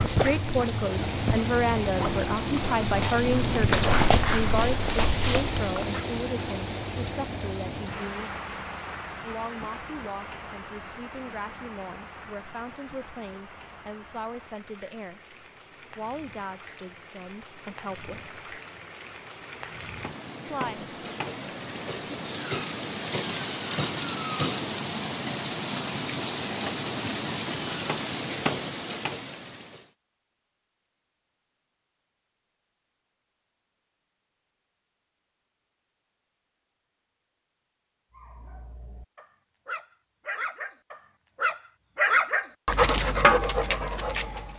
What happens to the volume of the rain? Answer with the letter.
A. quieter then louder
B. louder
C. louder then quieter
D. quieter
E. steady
A.